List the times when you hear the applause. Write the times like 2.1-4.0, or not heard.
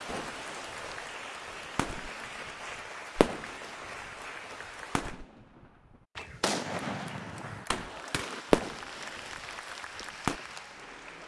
0.0-5.2, 6.9-11.2.